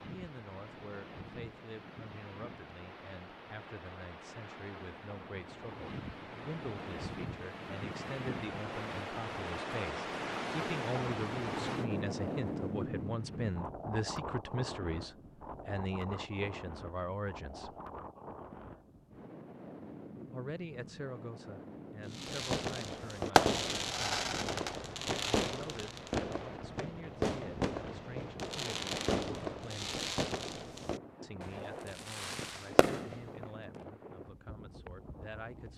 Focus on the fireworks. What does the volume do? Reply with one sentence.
The loudness of the fireworks goes down.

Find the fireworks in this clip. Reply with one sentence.
The fireworks can be heard from 22.1 to 33.5 s.